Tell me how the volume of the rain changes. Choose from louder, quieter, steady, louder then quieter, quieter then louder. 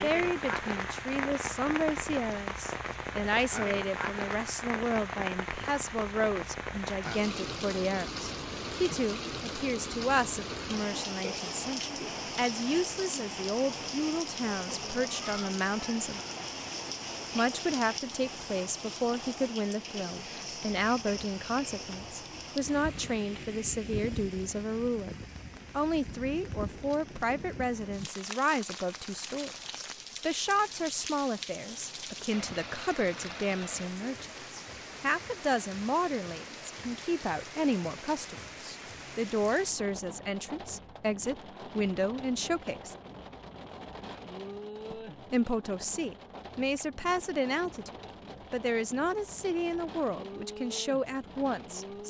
quieter.